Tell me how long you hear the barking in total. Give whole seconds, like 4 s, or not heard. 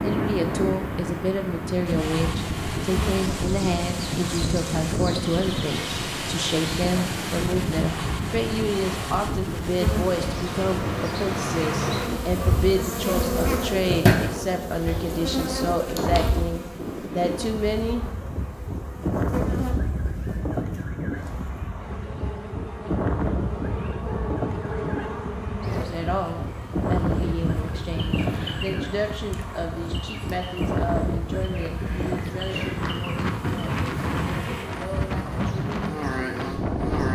not heard.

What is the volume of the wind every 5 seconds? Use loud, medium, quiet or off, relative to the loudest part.
loud, loud, medium, loud, loud, loud, loud, loud.